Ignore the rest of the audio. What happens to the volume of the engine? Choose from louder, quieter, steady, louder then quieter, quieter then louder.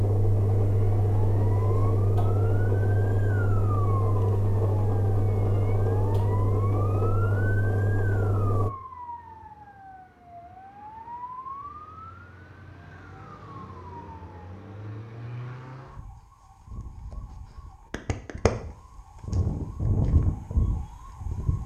steady.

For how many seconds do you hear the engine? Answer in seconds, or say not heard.
9 s.